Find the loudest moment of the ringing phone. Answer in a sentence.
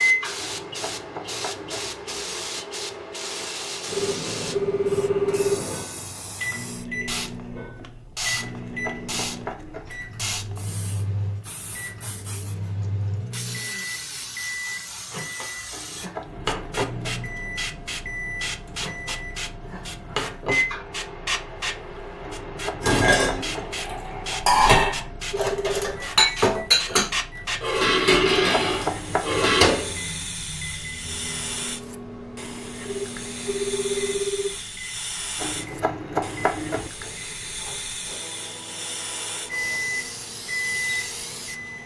The volume of the ringing phone peaks at 5 seconds.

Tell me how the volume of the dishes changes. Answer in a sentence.
The loudness of the dishes goes up.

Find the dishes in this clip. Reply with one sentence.
The dishes can be heard from 22.8 to 29.7 s.